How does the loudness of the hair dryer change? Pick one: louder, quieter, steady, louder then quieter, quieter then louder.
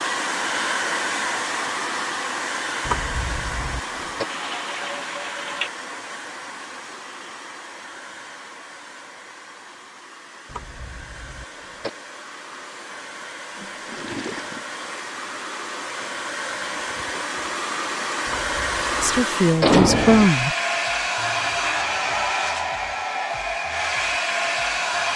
quieter then louder.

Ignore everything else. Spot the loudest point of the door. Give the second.
20 s.